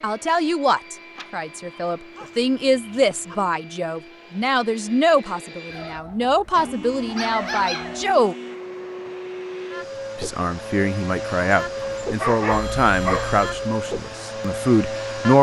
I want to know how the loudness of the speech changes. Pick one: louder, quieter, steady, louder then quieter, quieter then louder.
steady.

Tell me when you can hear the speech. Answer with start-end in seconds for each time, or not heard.
0.0-8.3, 10.2-15.3.